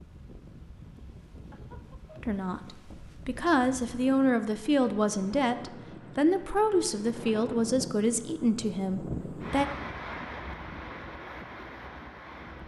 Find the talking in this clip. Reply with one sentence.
The talking can be heard from 2.2 to 9.7 s.